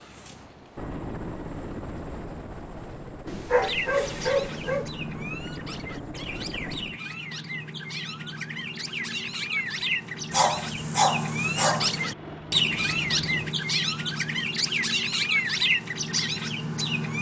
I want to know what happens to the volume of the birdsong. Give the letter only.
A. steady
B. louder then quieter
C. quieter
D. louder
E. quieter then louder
D.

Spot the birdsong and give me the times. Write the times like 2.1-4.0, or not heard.
3.6-17.1.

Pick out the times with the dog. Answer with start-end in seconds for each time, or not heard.
3.2-4.8, 10.3-12.1.